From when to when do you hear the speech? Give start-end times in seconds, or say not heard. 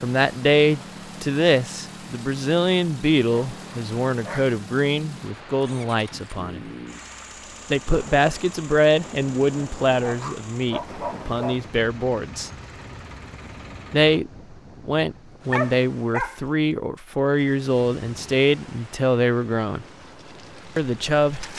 0.0-6.6, 7.7-12.5, 13.9-19.9, 20.8-21.5.